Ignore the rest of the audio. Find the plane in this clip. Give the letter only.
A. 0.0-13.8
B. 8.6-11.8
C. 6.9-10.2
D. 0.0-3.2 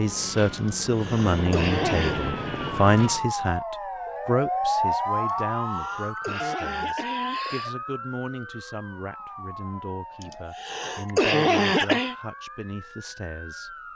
D.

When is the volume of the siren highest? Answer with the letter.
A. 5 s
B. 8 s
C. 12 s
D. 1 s
A.